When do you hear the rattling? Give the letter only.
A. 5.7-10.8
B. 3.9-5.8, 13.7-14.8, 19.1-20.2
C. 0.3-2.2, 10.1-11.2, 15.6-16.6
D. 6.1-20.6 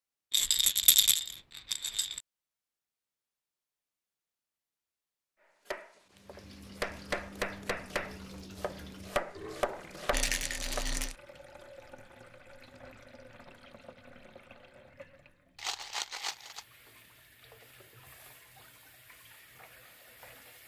C.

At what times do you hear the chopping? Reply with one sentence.
You can hear the chopping from 5.7 to 10.8 s.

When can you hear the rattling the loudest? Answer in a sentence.
The loudest moment of the rattling is at 1 second.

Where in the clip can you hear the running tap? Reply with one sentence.
The running tap can be heard from 6.1 to 20.6 s.